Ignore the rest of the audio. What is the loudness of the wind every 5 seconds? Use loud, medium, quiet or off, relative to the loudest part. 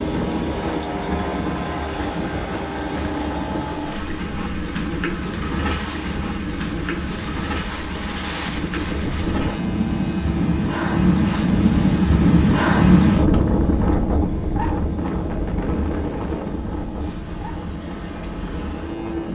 quiet, medium, loud, medium.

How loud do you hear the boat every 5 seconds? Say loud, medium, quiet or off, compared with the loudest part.
loud, loud, medium, medium.